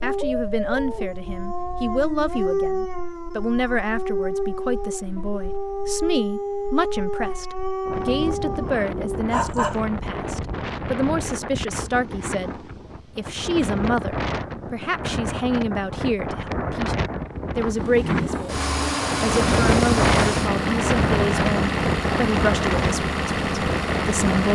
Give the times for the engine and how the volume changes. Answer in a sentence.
You can hear the engine from 17.8 to 24.5 s, at a steady volume.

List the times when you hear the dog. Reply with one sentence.
The dog can be heard from 0.0 to 9.8 s.